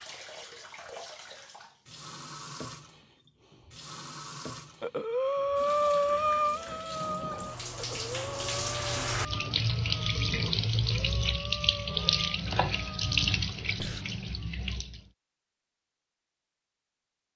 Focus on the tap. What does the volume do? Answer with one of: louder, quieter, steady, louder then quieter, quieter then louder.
louder.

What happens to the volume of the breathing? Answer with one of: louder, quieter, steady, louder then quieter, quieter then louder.
quieter.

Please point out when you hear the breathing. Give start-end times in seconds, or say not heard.
4.8-14.1.